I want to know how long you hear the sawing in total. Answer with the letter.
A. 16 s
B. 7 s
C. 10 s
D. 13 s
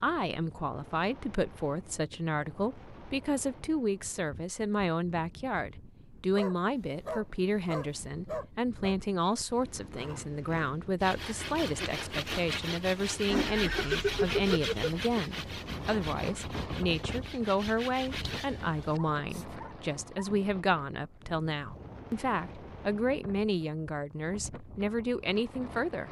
C.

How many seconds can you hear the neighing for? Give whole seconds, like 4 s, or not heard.
2 s.